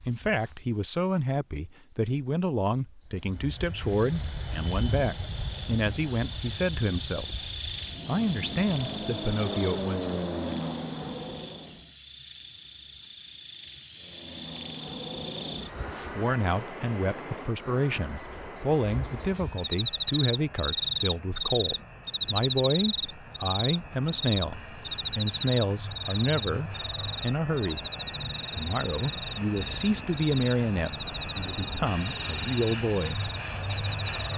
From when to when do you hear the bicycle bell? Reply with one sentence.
The bicycle bell can't be heard in this clip.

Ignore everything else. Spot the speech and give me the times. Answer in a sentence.
You can hear the speech from 0.0 to 7.5 s, from 8.1 to 10.2 s, from 16.1 to 27.9 s and from 28.6 to 33.2 s.